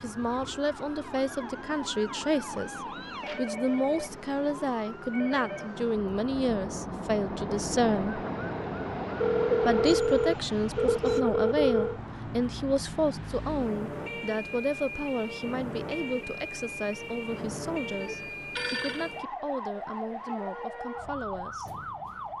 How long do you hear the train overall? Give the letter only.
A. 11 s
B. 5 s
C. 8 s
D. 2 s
A.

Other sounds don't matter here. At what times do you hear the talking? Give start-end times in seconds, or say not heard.
0.0-8.2, 9.7-21.7.